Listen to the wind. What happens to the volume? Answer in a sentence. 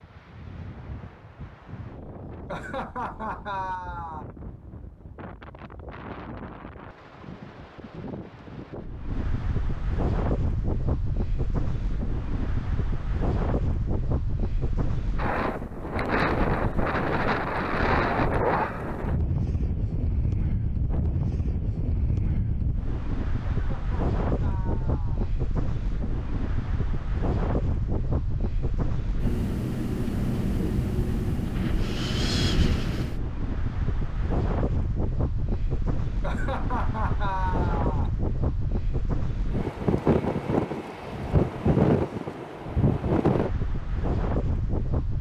The volume of the wind goes up.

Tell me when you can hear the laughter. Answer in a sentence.
You can hear the laughter from 2.5 to 4.2 s, from 23.5 to 25.3 s and from 36.2 to 38.1 s.